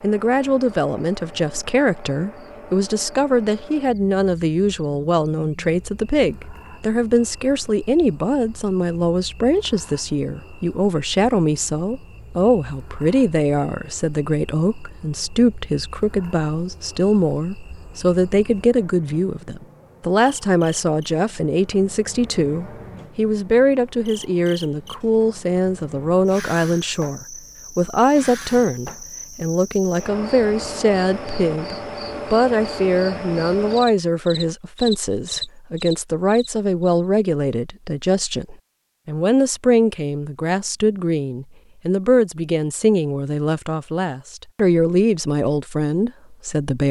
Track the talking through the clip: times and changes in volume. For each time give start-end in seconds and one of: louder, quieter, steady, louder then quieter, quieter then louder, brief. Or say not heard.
0.0-46.8 steady.